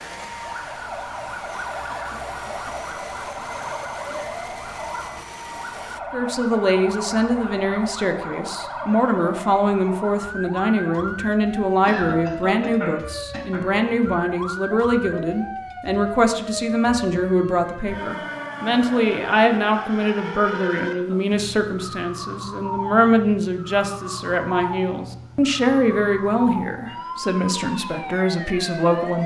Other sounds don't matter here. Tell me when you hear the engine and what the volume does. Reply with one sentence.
The engine can be heard from 0.0 to 6.0 s, at a steady volume.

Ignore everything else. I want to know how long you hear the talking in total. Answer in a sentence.
You can hear the talking for 23 seconds altogether.